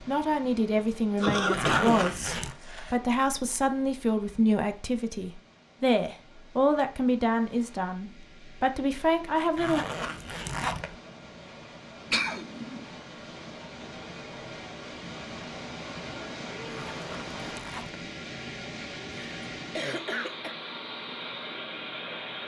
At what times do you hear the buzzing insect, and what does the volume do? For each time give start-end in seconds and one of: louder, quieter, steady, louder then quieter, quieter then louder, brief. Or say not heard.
not heard.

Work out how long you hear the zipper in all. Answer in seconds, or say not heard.
4 s.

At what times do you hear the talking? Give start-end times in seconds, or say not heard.
0.0-9.8.